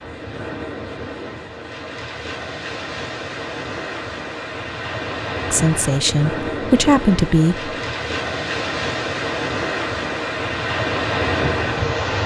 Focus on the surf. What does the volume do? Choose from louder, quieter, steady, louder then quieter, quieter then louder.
louder.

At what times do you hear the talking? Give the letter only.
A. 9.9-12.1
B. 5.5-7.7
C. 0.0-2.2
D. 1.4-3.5
B.